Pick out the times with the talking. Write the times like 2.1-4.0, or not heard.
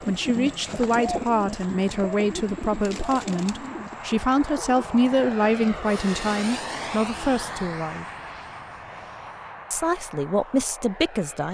0.1-8.1, 9.7-11.4.